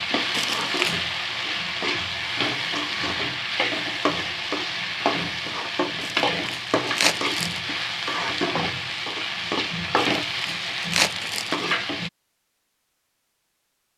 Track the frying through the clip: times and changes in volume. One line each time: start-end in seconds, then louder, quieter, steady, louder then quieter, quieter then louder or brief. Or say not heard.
0.0-12.1 steady.